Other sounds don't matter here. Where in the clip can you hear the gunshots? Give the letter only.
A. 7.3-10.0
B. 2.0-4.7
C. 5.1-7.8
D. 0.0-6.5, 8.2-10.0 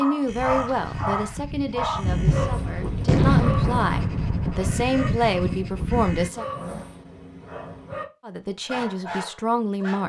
B.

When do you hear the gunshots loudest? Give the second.
3 s.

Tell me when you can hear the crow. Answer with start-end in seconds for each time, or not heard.
0.2-6.3.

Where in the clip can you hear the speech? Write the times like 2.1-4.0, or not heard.
0.0-6.5, 8.2-10.0.